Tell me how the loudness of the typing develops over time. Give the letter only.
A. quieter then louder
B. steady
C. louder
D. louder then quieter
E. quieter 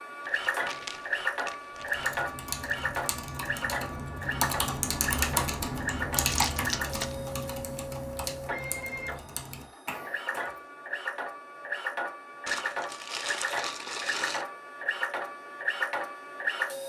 D.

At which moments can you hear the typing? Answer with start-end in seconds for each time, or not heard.
1.8-10.6.